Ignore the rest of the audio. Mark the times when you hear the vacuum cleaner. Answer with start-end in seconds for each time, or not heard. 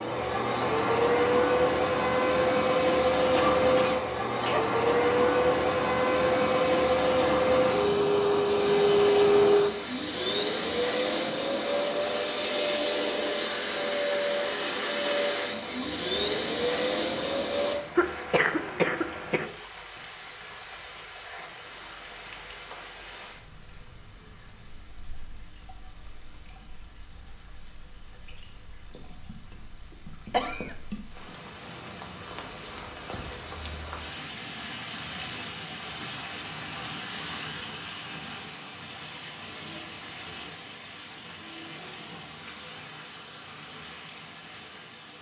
0.0-17.8.